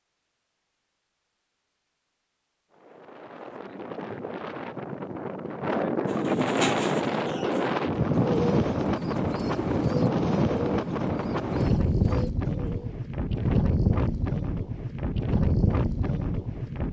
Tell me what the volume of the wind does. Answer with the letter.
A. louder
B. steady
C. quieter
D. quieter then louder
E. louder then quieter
A.